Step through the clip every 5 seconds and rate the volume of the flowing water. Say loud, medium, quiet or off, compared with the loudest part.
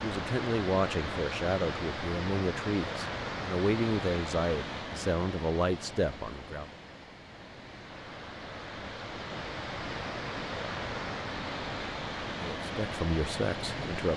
loud, medium, loud.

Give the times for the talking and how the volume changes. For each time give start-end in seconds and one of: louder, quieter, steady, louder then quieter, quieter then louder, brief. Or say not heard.
0.0-6.7 steady
12.3-14.1 brief.